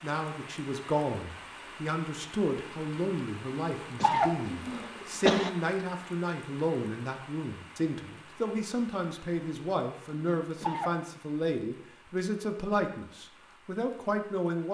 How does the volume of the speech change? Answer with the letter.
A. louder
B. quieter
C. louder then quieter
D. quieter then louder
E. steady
E.